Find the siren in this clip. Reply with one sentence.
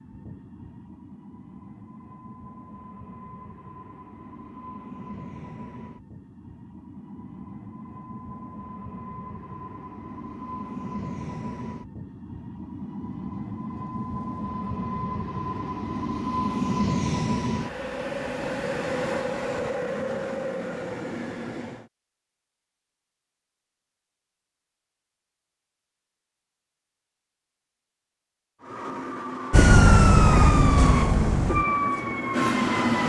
The siren can be heard from 29.5 to 33.0 s.